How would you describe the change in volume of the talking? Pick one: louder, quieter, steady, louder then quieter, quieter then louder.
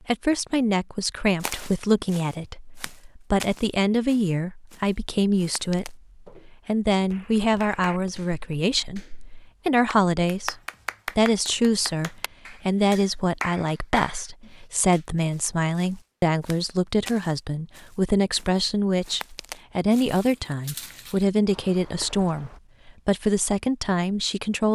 steady.